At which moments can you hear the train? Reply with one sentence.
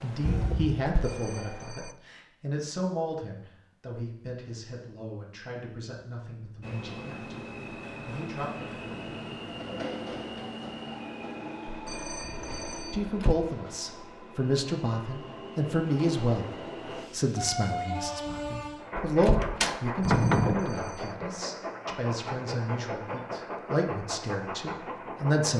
You can hear the train from 0.0 to 1.7 s and from 6.6 to 25.5 s.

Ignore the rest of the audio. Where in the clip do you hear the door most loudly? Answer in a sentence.
The volume of the door peaks at 20 seconds.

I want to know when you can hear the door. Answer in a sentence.
You can hear the door from 0.2 to 1.1 s, from 12.2 to 13.3 s and from 18.2 to 20.7 s.